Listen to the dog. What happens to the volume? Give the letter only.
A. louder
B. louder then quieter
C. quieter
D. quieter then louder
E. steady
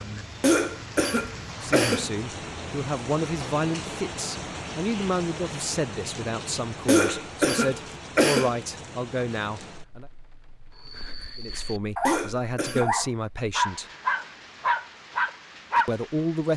A.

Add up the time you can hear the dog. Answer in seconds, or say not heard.
5 s.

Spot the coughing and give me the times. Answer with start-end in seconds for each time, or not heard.
0.4-2.1, 6.8-8.6, 12.1-12.9.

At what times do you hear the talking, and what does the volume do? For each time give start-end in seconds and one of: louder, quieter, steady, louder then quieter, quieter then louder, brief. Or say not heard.
1.6-10.1 steady
11.3-13.8 brief
15.8-16.5 brief.